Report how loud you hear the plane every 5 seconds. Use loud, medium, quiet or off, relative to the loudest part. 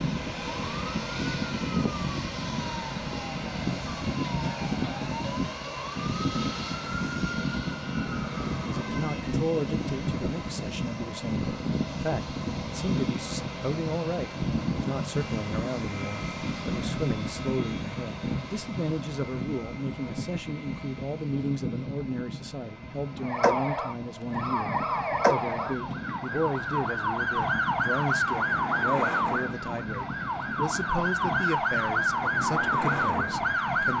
loud, loud, loud, loud, medium, medium, medium.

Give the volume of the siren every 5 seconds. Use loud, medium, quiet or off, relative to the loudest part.
quiet, quiet, off, off, loud, loud, loud.